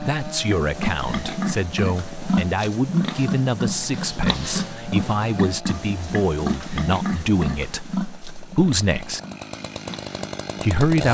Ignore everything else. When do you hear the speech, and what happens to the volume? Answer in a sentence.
You can hear the speech from 0.0 to 9.2 s, at a steady volume; and briefly from 10.6 to 11.0 s.